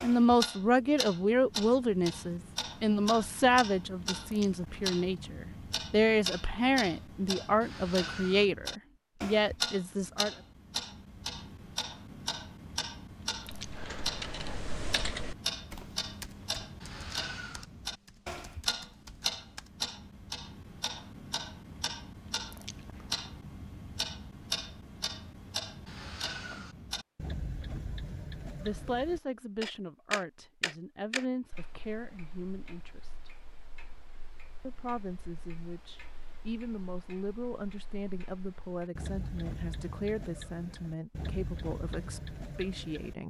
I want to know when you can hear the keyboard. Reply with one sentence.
The keyboard can be heard from 13.3 to 19.7 s.